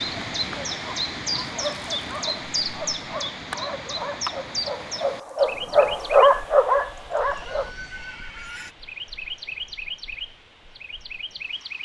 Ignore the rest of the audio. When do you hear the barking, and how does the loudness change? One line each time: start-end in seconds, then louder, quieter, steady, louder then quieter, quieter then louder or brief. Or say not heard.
0.3-7.8 louder.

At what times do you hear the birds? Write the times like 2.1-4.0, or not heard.
0.1-11.7.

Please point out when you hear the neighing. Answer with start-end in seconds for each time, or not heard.
7.5-8.8.